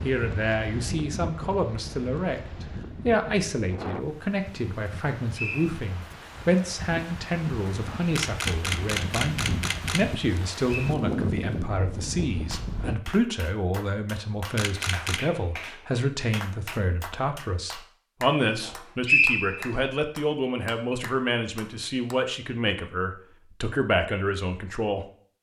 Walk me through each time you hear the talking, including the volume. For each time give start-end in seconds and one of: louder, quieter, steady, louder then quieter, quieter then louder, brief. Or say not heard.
0.0-25.3 steady.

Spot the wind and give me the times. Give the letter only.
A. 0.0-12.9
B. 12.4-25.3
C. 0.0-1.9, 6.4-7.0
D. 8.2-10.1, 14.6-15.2
A.